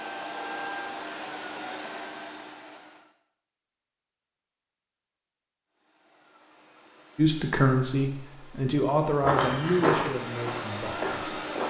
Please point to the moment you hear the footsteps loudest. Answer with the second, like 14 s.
10 s.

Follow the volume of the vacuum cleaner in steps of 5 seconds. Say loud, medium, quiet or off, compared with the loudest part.
loud, quiet, loud.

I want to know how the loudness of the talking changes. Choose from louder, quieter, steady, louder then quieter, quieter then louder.
quieter.